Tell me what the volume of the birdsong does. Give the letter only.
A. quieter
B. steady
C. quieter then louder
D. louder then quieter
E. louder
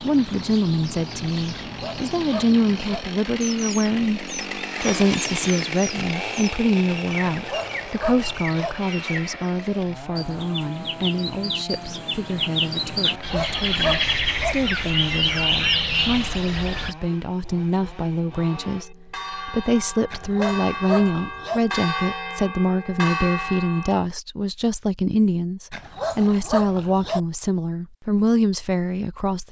E.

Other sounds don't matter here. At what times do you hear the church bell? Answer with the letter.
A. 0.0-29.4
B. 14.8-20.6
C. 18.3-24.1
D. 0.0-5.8
C.